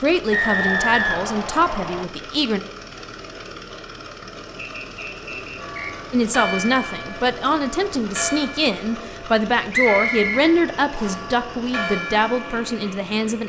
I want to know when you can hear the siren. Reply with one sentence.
The siren can't be heard in this clip.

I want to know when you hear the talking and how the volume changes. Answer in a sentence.
The talking can be heard briefly from 0.0 to 2.6 s; and from 6.1 to 13.4 s, at a steady volume.